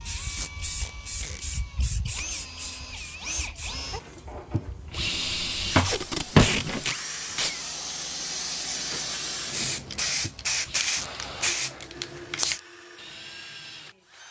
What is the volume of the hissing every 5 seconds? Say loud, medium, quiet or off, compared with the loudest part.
medium, medium, loud.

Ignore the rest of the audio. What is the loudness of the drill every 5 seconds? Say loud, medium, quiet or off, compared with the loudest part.
medium, loud, medium.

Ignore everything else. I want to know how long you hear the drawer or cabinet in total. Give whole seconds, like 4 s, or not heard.
2 s.